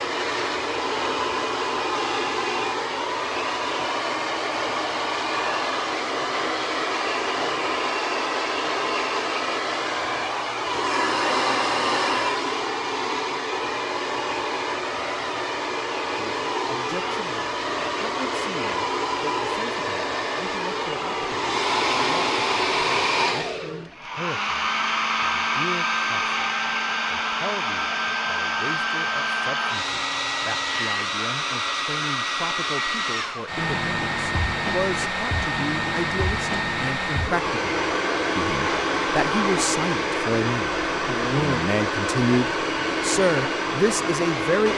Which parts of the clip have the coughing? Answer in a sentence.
The coughing can't be heard in this clip.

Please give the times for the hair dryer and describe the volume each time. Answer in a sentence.
You can hear the hair dryer from 0.0 to 44.7 s, at a steady volume.